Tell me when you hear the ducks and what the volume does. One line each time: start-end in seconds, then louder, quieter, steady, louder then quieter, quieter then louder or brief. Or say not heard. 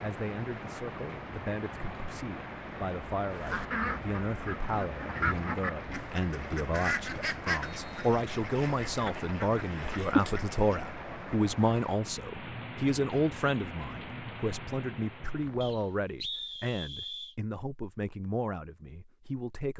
3.3-10.6 quieter then louder.